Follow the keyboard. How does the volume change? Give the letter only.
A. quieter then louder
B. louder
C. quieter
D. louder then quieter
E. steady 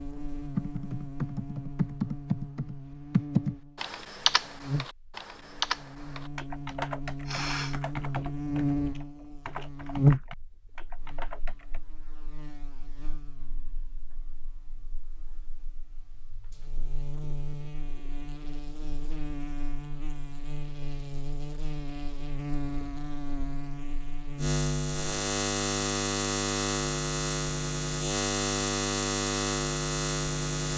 C.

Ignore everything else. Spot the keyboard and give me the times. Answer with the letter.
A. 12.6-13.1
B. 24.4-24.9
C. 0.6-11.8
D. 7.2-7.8
C.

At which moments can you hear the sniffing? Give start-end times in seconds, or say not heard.
7.2-7.8.